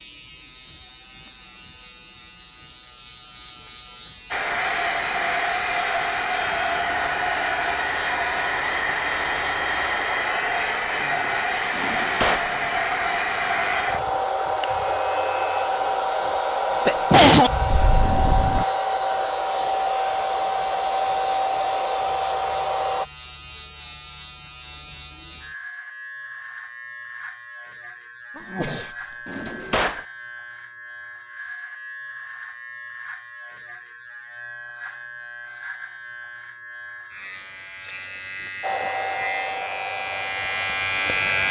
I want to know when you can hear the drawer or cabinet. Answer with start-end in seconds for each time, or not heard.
11.7-12.5, 29.2-30.1.